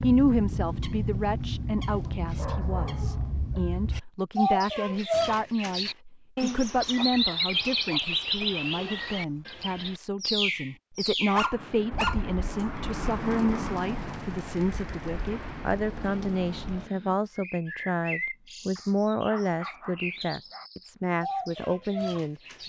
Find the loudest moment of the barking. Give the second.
12 s.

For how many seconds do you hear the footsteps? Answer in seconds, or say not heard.
not heard.